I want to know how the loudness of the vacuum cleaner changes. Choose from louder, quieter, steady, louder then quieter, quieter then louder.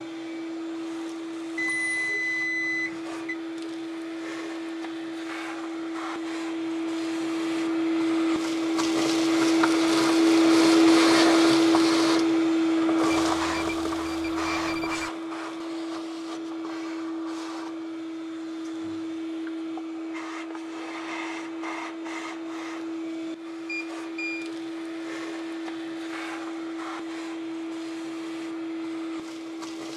louder then quieter.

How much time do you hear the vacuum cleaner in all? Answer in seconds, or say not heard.
30 s.